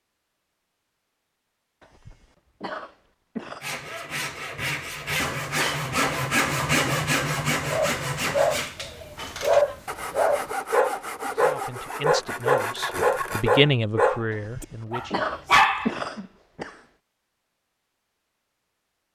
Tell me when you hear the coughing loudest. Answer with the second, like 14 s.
16 s.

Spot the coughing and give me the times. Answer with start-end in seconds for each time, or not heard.
1.8-3.6, 14.3-16.8.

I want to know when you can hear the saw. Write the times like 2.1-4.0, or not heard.
3.6-13.6.